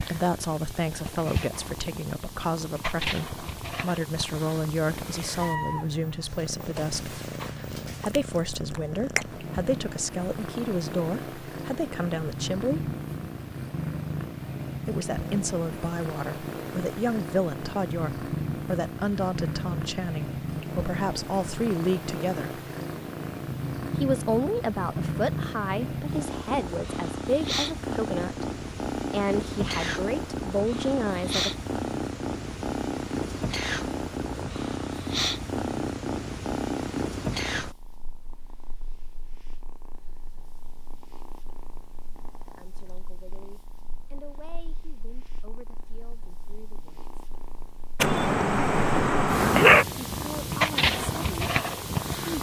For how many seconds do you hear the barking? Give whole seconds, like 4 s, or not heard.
2 s.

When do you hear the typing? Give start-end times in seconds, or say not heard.
not heard.